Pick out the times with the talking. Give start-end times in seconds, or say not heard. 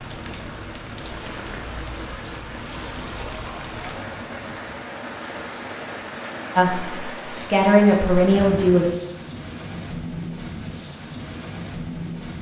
6.5-8.8.